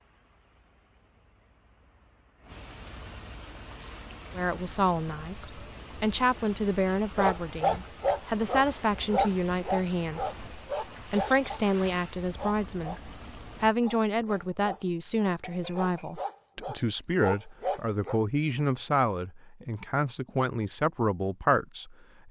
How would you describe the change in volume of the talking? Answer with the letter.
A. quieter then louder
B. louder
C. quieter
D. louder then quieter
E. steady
E.